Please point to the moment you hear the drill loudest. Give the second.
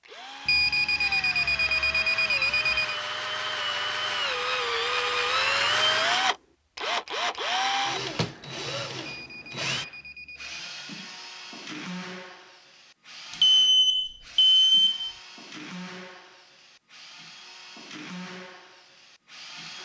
6 s.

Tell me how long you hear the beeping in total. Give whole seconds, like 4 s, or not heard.
6 s.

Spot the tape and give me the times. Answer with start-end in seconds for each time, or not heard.
not heard.